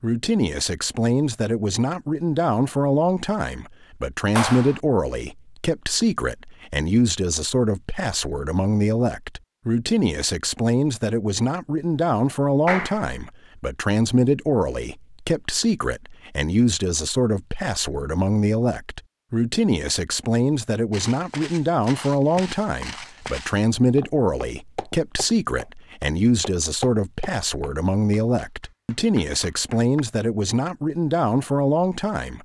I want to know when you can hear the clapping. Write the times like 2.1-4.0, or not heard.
4.3-4.8, 12.7-13.1, 28.1-30.0.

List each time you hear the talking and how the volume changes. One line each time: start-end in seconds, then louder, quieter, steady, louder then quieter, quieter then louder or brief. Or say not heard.
0.0-32.4 steady.